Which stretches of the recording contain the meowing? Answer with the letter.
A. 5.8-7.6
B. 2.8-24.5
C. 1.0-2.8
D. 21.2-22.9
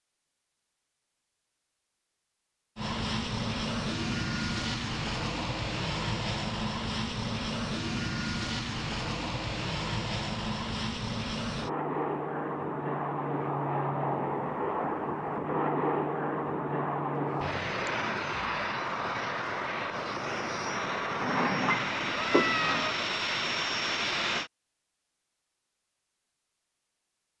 D.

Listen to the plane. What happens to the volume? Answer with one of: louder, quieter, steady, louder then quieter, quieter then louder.
steady.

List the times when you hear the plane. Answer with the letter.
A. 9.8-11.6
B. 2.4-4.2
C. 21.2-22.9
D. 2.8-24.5
D.